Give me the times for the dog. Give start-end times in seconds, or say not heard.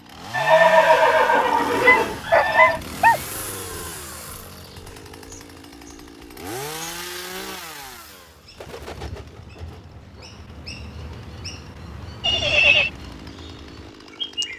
1.8-3.2.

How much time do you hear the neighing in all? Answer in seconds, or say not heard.
3 s.